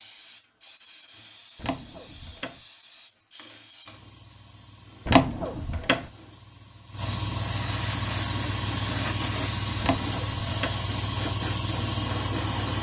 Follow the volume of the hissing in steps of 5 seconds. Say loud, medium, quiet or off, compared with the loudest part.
quiet, loud, loud.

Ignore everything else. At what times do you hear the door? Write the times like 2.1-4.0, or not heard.
1.6-2.6, 5.0-6.0, 9.8-10.8.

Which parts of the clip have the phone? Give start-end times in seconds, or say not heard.
not heard.